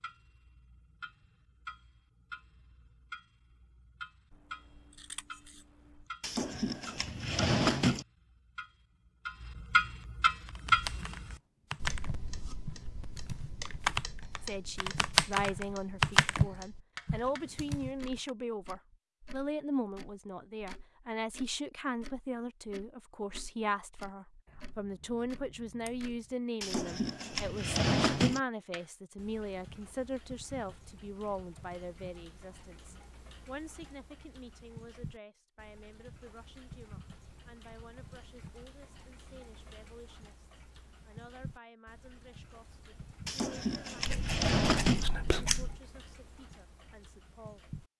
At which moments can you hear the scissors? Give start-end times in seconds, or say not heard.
4.3-6.0, 24.4-26.2, 44.0-45.8.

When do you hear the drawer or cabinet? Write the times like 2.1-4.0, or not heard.
6.2-8.1, 26.6-28.4, 43.2-45.0.